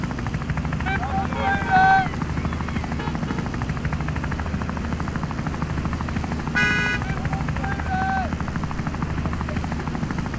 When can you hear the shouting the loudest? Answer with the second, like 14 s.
2 s.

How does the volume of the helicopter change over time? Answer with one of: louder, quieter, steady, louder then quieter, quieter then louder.
steady.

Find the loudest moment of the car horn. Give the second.
7 s.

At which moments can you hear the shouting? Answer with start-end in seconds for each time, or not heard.
0.8-2.1, 7.0-8.3.